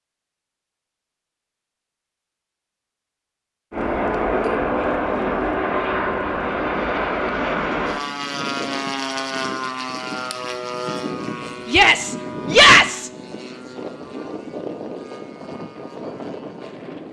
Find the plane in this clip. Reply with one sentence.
The plane can be heard from 3.7 to 17.0 s.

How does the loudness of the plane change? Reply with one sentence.
The loudness of the plane goes down.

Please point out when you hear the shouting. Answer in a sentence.
The shouting can be heard from 11.7 to 13.1 s.